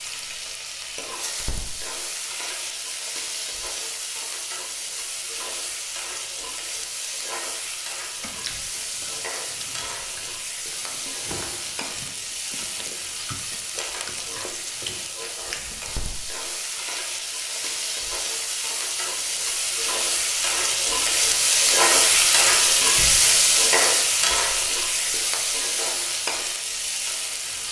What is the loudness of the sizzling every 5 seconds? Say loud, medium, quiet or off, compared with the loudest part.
quiet, quiet, quiet, medium, loud, medium.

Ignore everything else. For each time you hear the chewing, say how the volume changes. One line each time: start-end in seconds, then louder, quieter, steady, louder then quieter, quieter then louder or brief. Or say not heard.
8.2-15.9 louder.